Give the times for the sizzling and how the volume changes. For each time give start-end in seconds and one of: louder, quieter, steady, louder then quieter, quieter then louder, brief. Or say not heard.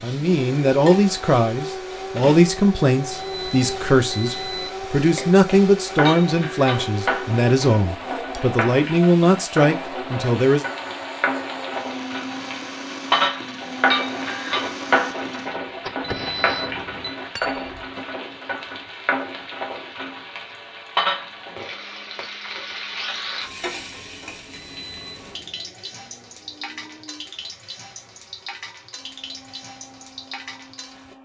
0.0-31.2 louder then quieter.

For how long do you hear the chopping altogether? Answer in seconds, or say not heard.
not heard.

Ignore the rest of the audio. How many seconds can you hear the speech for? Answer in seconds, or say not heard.
11 s.